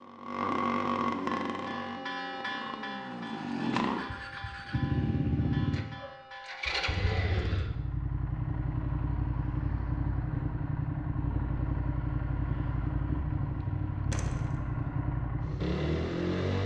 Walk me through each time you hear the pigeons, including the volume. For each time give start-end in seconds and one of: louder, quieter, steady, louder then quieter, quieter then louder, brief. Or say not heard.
not heard.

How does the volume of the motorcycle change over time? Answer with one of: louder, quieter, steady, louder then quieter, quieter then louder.
steady.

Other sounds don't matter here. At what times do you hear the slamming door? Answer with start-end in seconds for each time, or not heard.
14.1-14.6.